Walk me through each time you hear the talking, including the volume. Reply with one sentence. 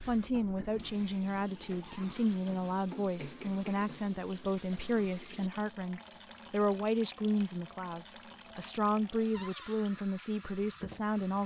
You can hear the talking from 0.1 to 11.4 s, at a steady volume.